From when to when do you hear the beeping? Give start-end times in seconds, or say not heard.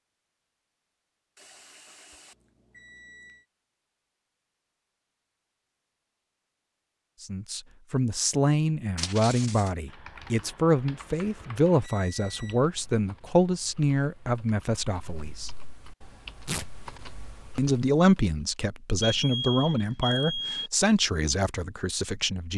1.4-3.5, 11.8-12.7, 19.0-20.7.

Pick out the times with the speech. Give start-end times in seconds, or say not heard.
7.2-15.5, 17.6-22.5.